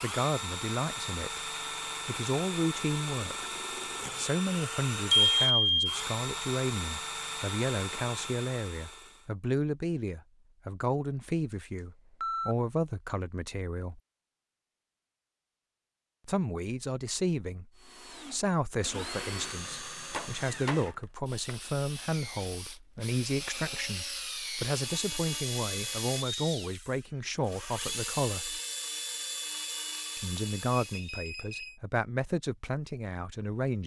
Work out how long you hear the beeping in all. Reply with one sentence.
You can hear the beeping for 3 seconds altogether.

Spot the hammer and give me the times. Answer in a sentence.
You can hear the hammer from 20.1 to 21.6 s.